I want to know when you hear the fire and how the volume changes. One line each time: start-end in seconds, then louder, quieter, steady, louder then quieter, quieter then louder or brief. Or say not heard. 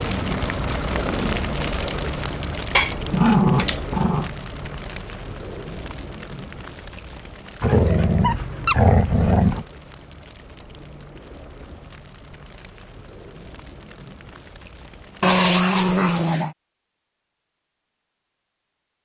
0.0-15.4 quieter.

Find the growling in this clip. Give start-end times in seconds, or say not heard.
2.8-4.3, 7.6-9.7, 15.2-16.6.